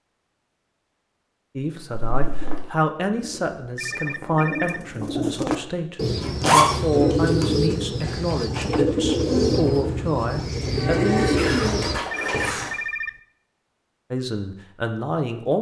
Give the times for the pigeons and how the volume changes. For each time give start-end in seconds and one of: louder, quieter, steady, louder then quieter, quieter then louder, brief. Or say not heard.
2.0-12.7 louder.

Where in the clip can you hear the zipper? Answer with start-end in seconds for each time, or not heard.
1.9-2.6, 6.2-7.5, 11.3-12.8.